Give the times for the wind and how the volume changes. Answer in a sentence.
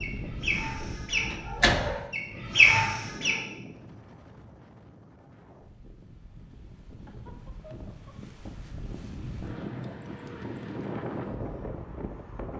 The wind can be heard from 0.0 to 12.5 s, getting quieter then louder.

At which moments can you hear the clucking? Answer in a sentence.
You can hear the clucking from 0.0 to 3.4 s.